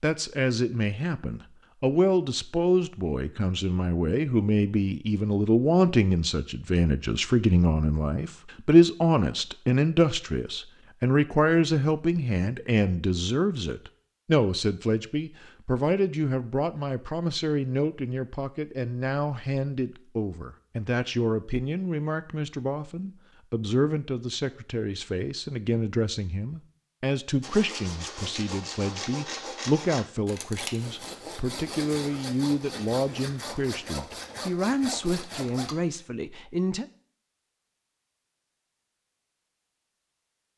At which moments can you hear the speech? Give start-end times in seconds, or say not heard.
0.0-36.9.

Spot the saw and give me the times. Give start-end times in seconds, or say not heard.
27.4-35.8.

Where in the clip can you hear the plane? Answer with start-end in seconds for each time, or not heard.
not heard.